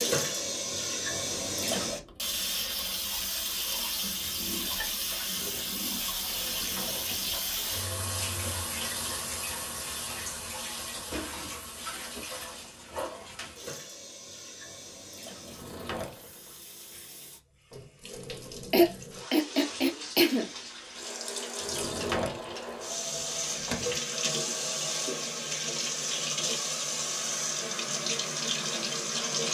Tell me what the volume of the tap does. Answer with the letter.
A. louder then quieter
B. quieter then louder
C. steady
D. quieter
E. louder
B.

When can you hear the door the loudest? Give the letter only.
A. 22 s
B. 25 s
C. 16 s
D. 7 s
A.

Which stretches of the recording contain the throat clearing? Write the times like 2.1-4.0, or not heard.
18.7-20.5.